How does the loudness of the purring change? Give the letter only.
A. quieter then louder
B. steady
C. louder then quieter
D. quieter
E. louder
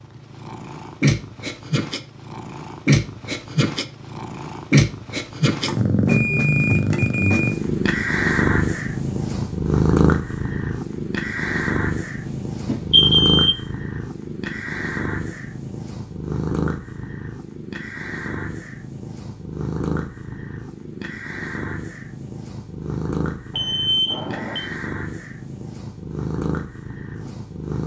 D.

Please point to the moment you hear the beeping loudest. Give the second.
13 s.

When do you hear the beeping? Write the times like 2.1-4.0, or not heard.
5.7-7.5, 12.7-13.6, 23.6-24.6.